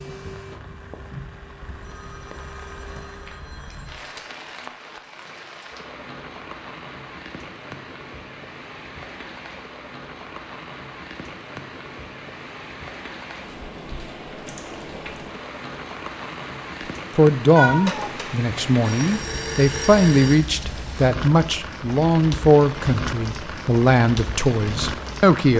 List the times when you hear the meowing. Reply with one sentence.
You can hear the meowing from 17.6 to 18.1 s.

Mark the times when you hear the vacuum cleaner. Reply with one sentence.
The vacuum cleaner can be heard from 0.0 to 3.5 s.